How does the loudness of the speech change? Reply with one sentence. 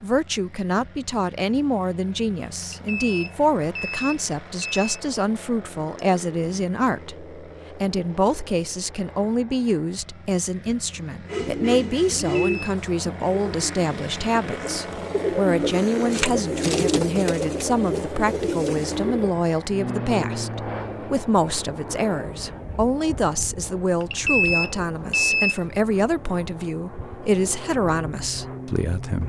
The loudness of the speech stays about the same.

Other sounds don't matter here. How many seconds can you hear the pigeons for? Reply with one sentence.
The pigeons can be heard for 8 seconds in total.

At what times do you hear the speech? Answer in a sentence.
The speech can be heard from 0.0 to 29.2 s.